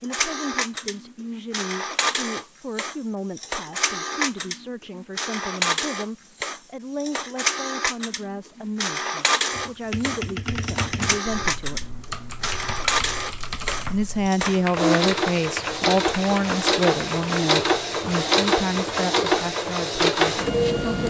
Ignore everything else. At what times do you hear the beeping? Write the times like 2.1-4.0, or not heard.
not heard.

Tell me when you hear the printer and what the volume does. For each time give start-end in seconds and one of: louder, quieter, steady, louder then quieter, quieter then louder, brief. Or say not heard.
0.0-21.0 louder.